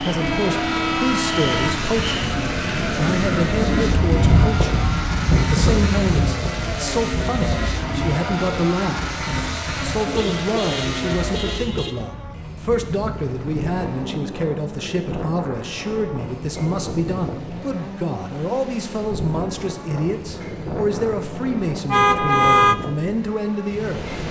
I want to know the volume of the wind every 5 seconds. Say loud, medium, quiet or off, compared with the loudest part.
loud, loud, medium, medium, medium.